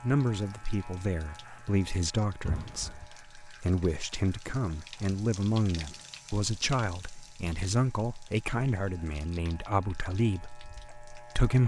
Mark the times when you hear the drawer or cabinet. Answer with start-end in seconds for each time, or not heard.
2.5-3.0.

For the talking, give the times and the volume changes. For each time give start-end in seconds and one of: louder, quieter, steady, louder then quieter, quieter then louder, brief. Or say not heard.
0.0-11.6 steady.